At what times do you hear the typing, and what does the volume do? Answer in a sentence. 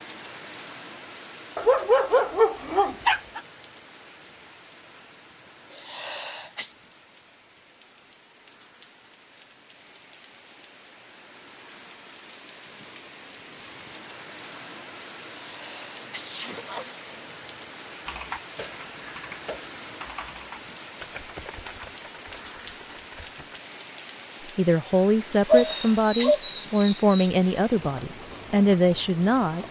The typing can be heard from 18.1 to 23.6 s, getting quieter.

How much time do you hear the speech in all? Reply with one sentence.
You can hear the speech for 5 seconds altogether.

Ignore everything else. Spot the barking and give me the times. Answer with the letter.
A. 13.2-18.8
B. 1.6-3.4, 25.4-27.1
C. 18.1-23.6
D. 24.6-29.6
B.